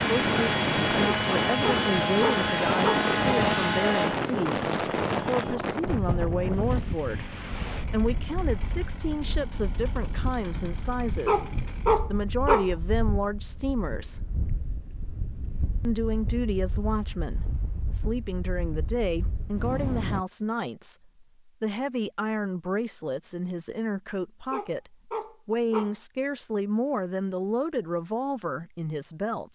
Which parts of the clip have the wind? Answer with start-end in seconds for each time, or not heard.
0.0-20.2.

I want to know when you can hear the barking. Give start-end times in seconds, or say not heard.
1.6-3.0, 11.2-12.7, 24.5-25.9.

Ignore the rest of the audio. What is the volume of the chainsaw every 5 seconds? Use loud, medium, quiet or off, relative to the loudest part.
loud, quiet, quiet, off, off, off.